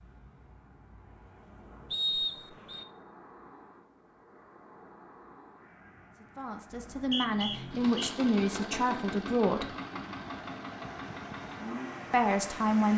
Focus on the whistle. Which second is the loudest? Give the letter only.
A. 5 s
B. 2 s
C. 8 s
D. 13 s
B.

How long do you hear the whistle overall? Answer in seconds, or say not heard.
2 s.